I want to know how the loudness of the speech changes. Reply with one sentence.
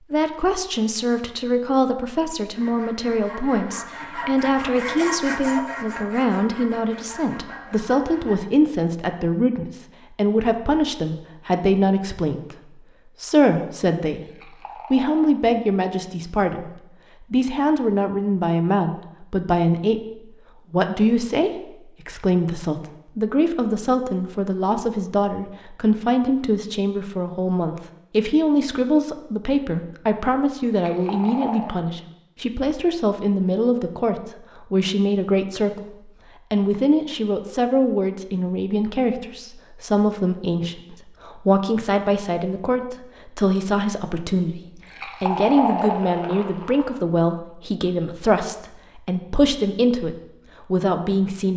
The loudness of the speech stays about the same.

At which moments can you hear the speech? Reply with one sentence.
The speech can be heard from 0.1 to 14.2 s and from 14.9 to 51.5 s.